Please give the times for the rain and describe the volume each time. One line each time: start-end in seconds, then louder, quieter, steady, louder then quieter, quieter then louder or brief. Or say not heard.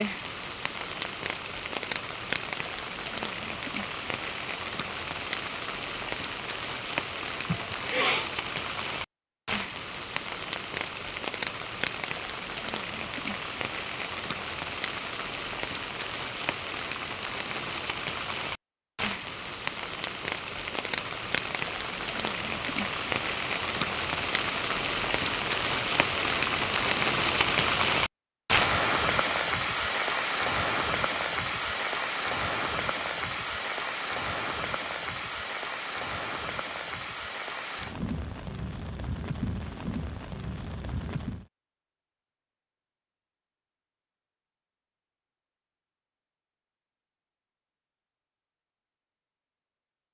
0.0-41.5 louder then quieter.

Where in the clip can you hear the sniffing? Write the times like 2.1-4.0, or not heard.
7.5-8.2.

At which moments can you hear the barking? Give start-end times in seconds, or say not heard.
not heard.